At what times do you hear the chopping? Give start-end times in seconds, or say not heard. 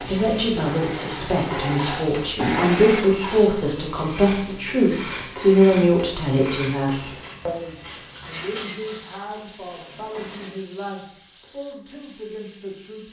not heard.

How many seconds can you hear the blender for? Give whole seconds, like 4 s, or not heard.
3 s.